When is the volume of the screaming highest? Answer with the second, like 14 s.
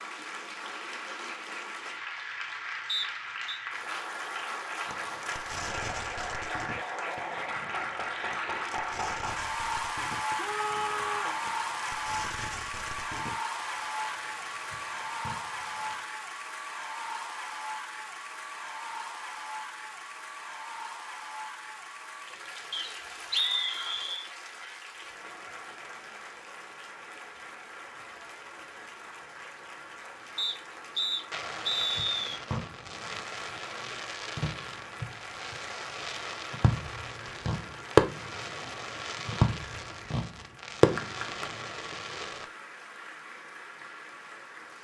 11 s.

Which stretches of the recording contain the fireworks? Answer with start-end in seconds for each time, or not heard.
4.8-16.1, 31.3-42.5.